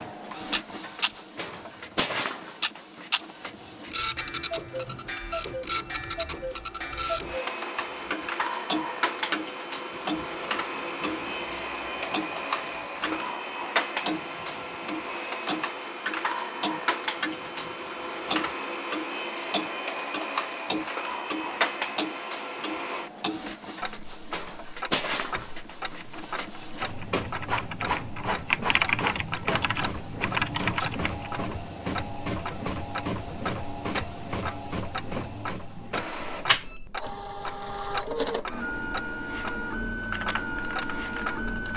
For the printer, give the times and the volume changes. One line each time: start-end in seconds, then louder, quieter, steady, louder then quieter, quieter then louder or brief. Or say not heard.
0.0-41.7 steady.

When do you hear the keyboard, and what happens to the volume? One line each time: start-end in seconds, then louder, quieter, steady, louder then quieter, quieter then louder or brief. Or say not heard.
25.3-31.3 louder
40.0-41.7 brief.